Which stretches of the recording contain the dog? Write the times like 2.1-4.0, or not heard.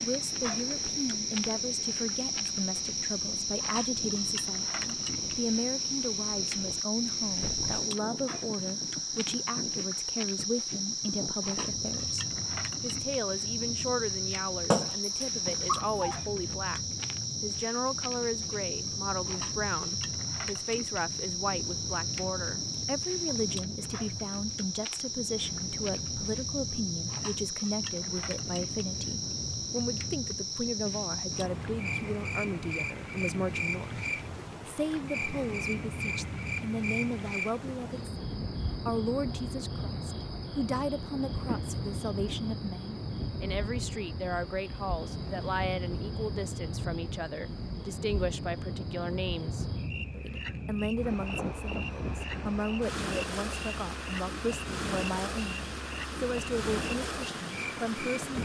14.3-16.1.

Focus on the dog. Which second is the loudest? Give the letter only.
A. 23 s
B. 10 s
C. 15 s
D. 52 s
C.